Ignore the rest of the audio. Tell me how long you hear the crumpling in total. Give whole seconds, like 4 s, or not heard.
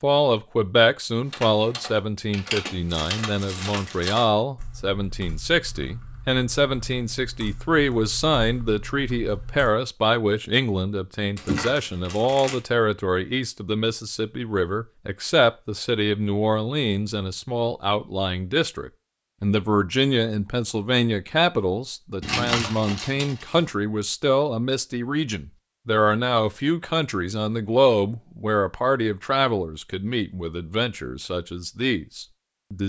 4 s.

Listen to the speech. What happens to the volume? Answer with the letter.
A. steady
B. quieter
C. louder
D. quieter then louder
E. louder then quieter
A.